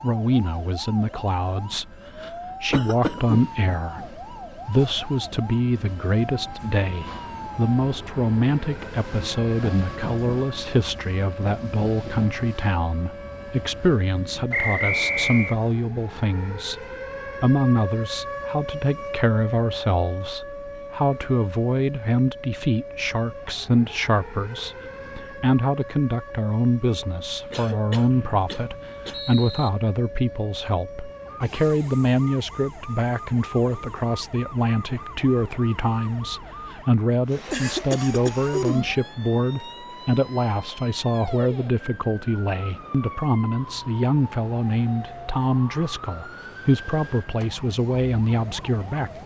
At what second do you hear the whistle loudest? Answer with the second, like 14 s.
15 s.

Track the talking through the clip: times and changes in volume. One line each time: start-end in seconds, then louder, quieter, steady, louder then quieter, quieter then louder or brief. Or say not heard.
0.0-49.2 steady.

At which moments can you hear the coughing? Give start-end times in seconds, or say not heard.
2.7-3.5, 27.5-29.1, 37.5-39.0.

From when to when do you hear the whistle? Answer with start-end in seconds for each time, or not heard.
14.5-15.6, 28.1-29.7.